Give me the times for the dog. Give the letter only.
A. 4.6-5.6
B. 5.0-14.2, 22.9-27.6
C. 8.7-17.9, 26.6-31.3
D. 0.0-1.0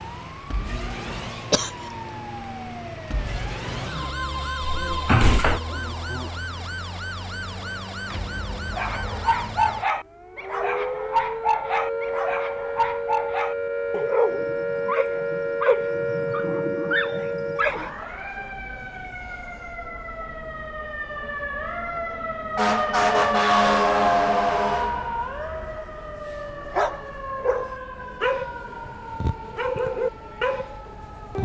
C.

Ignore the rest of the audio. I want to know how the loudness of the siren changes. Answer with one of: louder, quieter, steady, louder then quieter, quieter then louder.
louder then quieter.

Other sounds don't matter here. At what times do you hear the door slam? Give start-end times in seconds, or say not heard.
4.6-5.6.